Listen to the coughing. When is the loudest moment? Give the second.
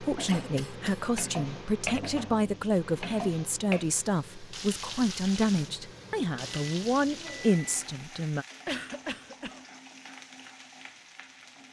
9 s.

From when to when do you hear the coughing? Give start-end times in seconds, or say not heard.
0.2-1.0, 8.7-9.7.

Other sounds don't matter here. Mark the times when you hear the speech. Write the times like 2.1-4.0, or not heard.
0.0-8.4.